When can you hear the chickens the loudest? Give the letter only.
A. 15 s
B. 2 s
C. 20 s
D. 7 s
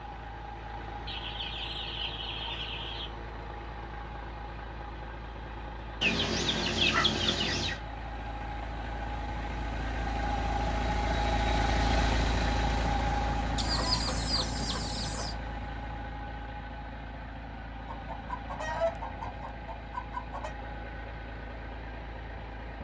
D.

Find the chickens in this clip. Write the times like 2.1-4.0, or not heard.
1.1-3.1, 6.0-7.8, 13.6-15.3, 17.9-20.5.